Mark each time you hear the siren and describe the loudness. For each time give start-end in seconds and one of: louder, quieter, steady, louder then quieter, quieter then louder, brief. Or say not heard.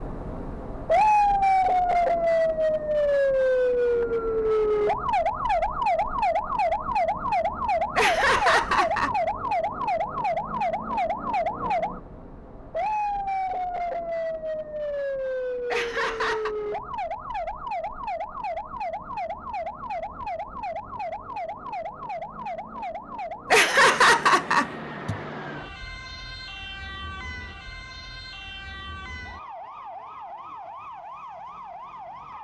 0.0-32.3 quieter.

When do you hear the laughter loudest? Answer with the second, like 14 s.
24 s.